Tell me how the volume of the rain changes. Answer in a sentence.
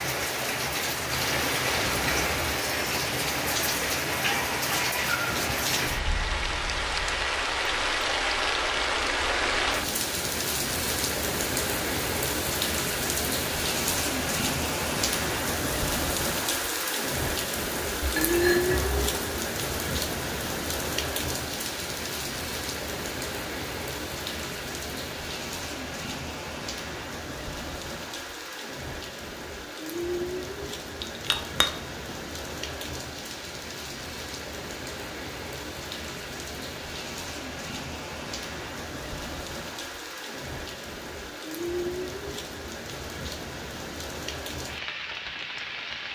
The volume of the rain goes down.